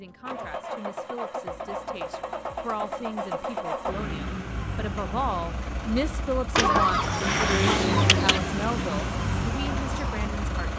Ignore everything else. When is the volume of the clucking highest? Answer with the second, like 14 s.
7 s.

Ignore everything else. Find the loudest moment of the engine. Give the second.
8 s.